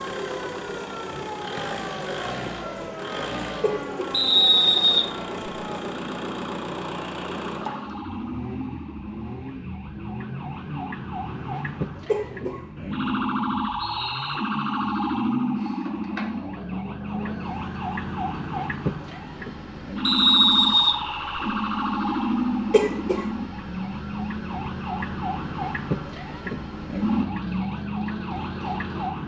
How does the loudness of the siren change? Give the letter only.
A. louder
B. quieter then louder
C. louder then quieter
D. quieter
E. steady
A.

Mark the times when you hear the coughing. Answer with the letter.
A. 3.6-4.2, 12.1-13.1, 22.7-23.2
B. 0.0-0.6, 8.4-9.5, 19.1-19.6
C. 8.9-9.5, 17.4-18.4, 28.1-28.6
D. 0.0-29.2
A.